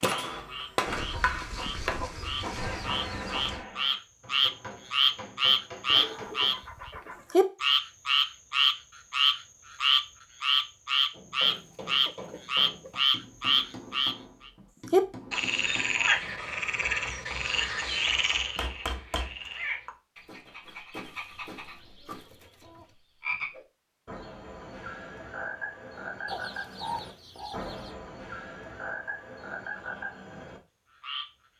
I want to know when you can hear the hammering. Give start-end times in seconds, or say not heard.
0.0-6.6, 11.1-19.9.